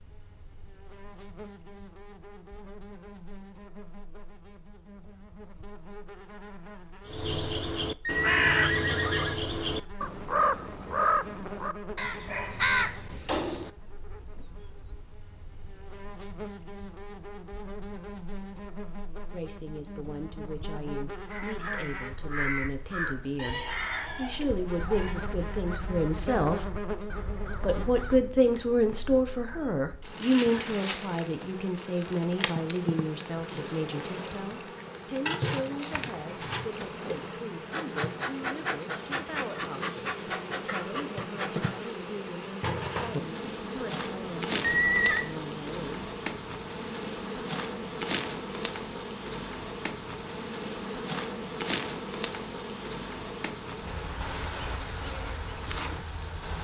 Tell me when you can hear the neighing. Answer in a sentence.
You can hear the neighing from 8.1 to 9.3 s, from 23.4 to 25.1 s and from 44.6 to 45.2 s.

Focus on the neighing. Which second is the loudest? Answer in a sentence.
The loudest moment of the neighing is at 45 seconds.